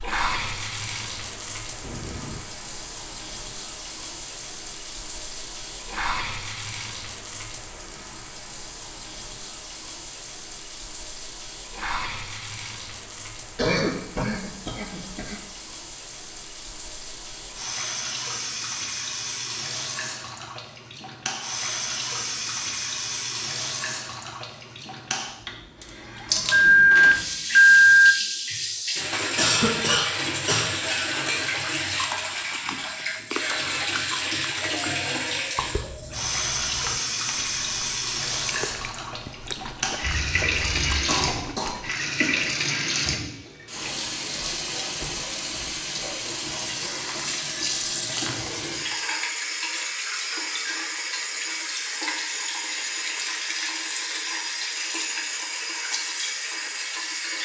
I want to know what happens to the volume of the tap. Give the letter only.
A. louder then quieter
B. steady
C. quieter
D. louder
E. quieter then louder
D.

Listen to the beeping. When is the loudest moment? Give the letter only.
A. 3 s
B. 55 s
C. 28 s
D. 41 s
C.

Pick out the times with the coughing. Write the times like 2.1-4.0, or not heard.
13.6-15.4, 29.4-30.7, 40.5-42.5.